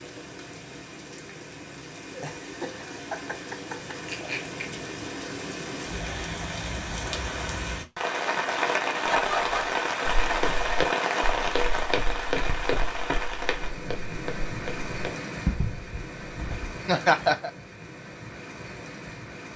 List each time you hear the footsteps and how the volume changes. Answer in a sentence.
The footsteps can be heard from 10.1 to 16.8 s, getting quieter then louder.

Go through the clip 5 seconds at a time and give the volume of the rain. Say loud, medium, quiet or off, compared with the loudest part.
medium, loud, loud, medium.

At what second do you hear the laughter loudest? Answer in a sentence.
The loudest moment of the laughter is at 17 seconds.